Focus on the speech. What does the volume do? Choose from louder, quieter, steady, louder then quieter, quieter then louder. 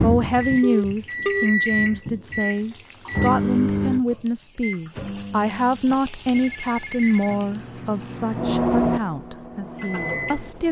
quieter.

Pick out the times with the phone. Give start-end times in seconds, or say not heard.
0.6-1.5, 6.3-7.4.